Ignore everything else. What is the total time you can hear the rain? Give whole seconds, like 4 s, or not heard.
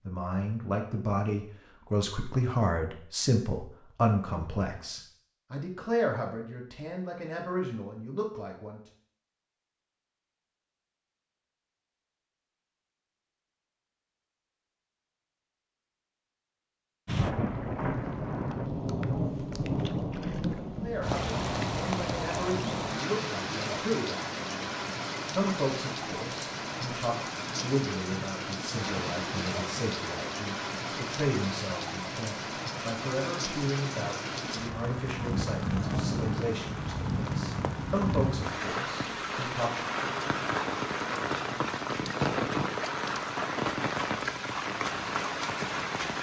29 s.